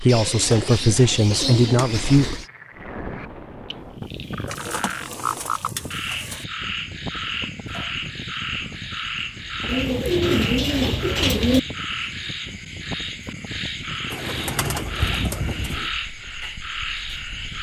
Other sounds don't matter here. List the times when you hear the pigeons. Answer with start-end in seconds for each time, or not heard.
0.1-2.5, 4.5-6.5, 9.7-11.6, 14.1-15.9.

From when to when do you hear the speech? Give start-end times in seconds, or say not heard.
0.0-2.2.